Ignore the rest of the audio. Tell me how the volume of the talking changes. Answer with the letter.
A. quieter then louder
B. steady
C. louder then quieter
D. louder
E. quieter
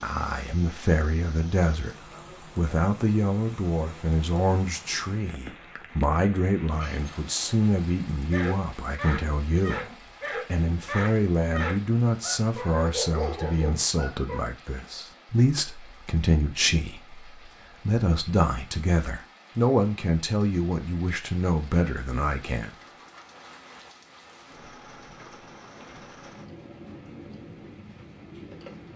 B.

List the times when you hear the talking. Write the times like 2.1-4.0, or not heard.
0.0-22.7.